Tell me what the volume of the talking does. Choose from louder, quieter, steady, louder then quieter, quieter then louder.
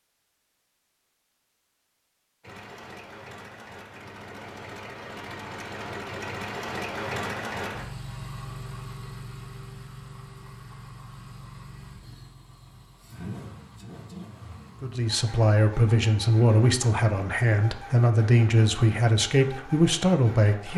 steady.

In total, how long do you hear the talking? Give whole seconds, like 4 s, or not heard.
6 s.